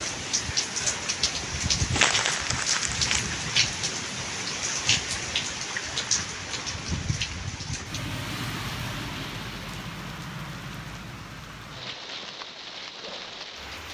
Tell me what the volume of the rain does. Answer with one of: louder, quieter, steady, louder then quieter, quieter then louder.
quieter.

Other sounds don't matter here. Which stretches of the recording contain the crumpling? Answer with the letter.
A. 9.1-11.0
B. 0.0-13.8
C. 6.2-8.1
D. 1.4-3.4
D.